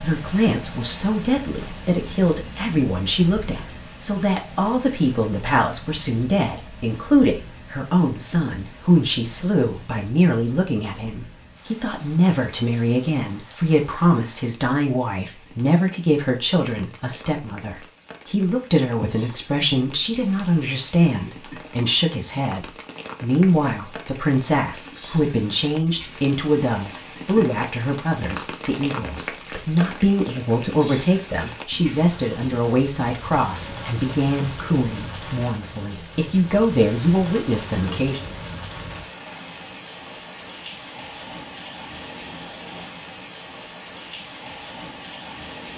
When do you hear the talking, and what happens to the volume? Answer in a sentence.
The talking can be heard from 0.0 to 38.4 s, at a steady volume.